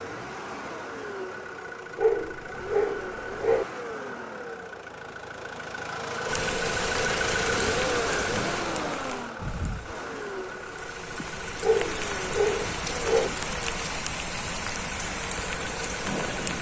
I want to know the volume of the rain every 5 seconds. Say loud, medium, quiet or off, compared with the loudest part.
off, loud, loud, loud.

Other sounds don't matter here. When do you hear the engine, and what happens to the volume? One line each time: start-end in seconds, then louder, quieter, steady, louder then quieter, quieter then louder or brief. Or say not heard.
0.0-16.5 louder then quieter.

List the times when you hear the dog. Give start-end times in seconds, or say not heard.
1.9-3.6, 11.6-13.3.